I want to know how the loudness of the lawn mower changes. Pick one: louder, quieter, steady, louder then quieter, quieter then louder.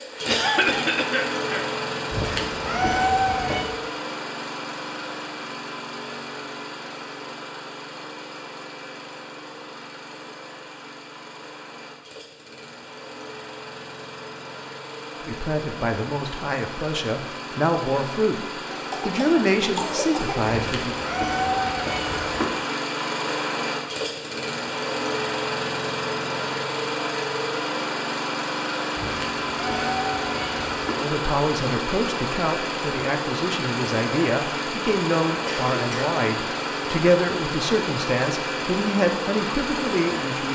quieter then louder.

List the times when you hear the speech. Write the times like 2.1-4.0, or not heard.
15.2-20.9, 31.0-40.5.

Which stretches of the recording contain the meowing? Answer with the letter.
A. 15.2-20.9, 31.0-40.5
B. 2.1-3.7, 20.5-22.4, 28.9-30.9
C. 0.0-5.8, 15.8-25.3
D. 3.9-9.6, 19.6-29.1
B.